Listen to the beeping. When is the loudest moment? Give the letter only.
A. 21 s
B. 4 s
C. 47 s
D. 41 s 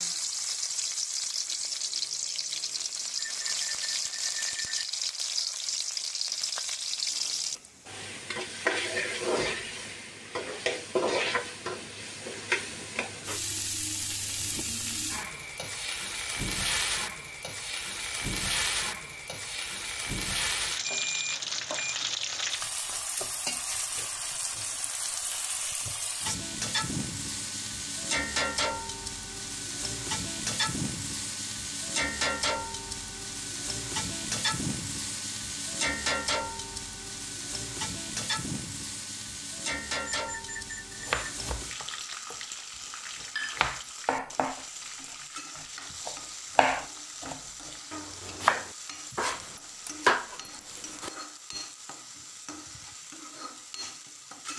A.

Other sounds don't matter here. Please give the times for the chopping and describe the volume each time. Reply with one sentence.
The chopping can be heard briefly from 41.0 to 42.4 s; and from 43.2 to 51.1 s, getting quieter then louder.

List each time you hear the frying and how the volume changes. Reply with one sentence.
You can hear the frying from 0.0 to 54.5 s, getting quieter.